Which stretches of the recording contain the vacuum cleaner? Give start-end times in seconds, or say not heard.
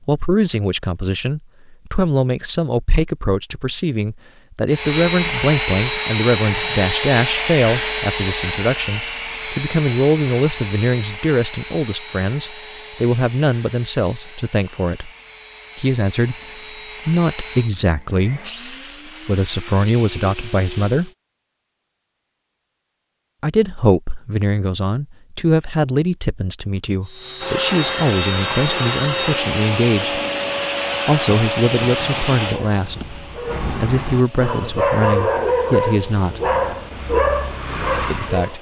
4.7-21.1, 27.0-38.5.